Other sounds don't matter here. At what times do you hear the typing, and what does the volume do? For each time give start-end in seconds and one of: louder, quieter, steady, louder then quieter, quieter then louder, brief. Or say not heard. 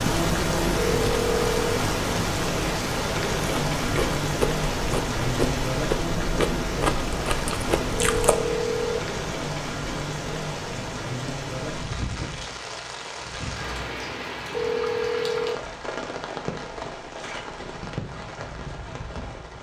not heard.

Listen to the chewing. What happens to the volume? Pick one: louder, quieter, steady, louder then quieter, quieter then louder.
steady.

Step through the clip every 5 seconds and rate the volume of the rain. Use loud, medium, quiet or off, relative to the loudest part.
loud, loud, medium, medium.